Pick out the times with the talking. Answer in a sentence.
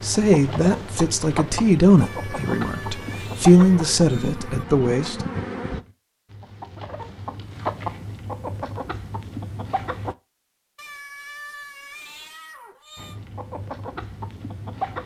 The talking can be heard from 0.0 to 5.2 s.